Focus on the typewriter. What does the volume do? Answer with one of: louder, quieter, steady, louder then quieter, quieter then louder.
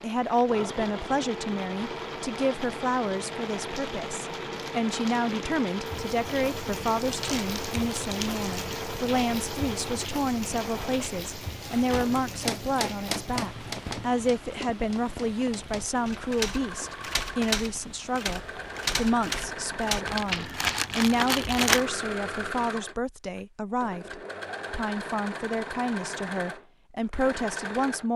quieter then louder.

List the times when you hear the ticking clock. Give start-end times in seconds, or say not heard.
not heard.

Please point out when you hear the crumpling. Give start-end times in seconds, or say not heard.
7.0-8.6, 20.1-21.9.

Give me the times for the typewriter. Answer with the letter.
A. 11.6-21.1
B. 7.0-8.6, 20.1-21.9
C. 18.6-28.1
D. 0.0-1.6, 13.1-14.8
A.